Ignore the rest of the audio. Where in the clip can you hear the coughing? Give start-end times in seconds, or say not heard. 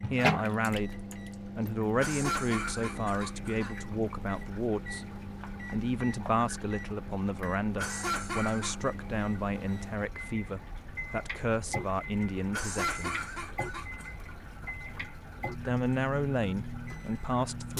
1.9-3.8, 7.8-8.8, 12.5-14.2.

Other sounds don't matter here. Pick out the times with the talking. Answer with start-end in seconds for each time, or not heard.
0.1-5.0, 5.7-13.2, 15.7-17.7.